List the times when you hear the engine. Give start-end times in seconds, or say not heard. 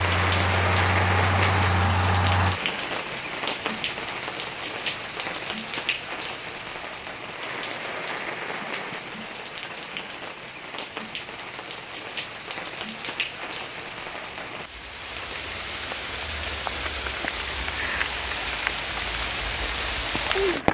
0.0-2.6.